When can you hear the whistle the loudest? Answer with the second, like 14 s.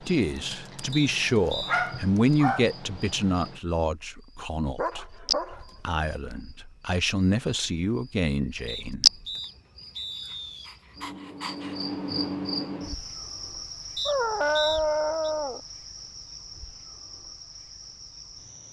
15 s.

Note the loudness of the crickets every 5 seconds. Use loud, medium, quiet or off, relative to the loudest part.
quiet, loud, medium, quiet.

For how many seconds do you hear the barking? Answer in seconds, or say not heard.
6 s.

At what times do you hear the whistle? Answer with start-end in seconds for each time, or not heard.
0.9-1.8, 8.7-10.7, 13.9-15.3.